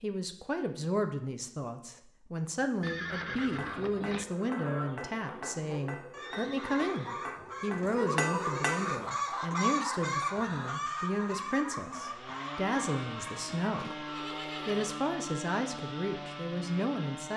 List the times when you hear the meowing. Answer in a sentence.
You can't hear the meowing here.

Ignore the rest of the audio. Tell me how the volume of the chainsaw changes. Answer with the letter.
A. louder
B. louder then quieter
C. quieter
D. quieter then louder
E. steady
E.